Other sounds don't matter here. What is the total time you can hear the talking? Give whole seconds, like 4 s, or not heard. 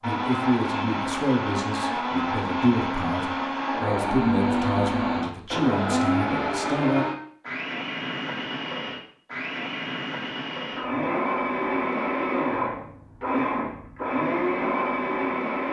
7 s.